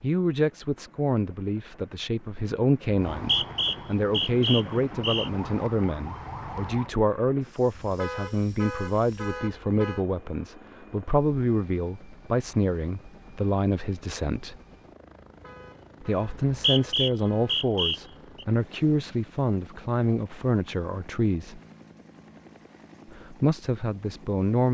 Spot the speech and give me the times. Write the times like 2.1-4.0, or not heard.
0.0-14.6, 16.0-21.6, 23.1-24.6.